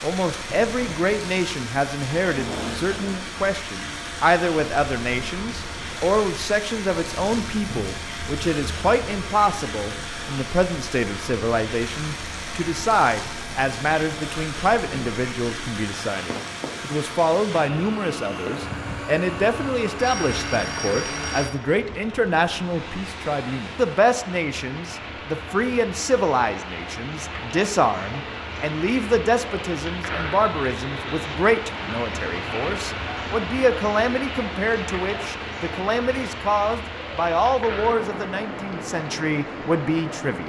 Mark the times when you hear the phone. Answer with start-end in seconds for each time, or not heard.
19.4-21.6.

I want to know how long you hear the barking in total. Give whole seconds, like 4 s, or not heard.
not heard.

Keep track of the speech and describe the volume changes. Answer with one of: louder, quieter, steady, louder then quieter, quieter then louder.
steady.